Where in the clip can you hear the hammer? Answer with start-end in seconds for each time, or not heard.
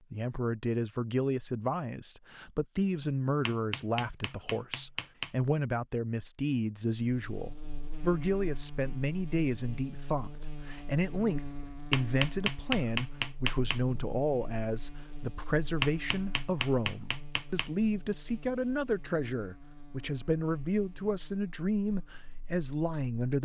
3.5-5.3, 11.9-13.8, 15.8-17.7.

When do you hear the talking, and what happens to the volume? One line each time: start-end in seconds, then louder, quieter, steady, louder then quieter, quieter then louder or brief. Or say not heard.
0.1-23.3 steady.